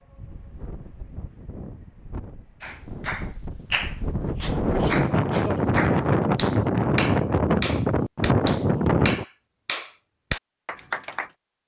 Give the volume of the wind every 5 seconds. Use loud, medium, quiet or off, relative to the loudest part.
medium, loud, off.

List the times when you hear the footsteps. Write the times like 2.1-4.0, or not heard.
not heard.